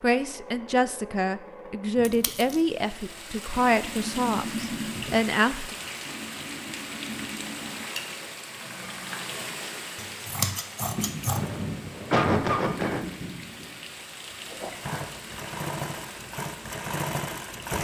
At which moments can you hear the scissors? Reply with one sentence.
You can hear the scissors from 2.0 to 2.6 s and from 9.9 to 11.4 s.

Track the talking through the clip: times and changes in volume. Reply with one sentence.
The talking can be heard from 0.0 to 5.8 s, at a steady volume.